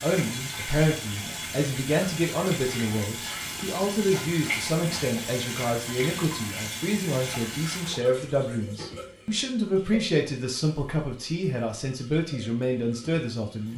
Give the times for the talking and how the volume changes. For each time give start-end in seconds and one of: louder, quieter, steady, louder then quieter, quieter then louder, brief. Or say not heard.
0.0-13.7 steady.